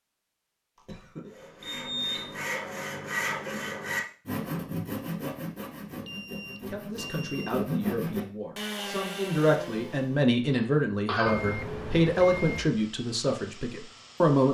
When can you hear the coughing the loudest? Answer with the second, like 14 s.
11 s.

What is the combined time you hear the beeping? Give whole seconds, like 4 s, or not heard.
4 s.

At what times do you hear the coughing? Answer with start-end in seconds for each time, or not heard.
0.8-1.6, 10.4-11.4.